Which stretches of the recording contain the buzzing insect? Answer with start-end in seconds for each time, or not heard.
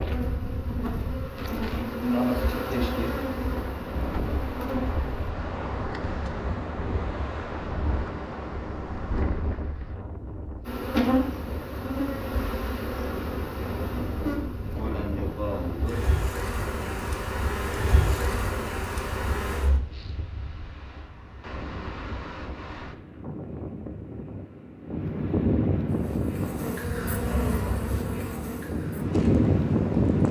0.0-5.0, 10.7-19.8, 25.9-30.2.